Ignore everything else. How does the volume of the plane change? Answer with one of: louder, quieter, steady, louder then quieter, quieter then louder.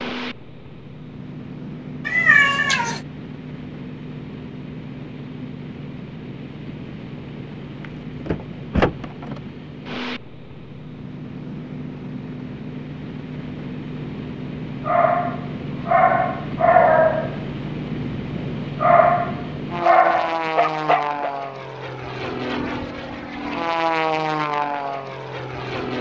louder.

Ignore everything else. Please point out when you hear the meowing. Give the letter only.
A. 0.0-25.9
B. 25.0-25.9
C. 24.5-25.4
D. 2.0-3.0
D.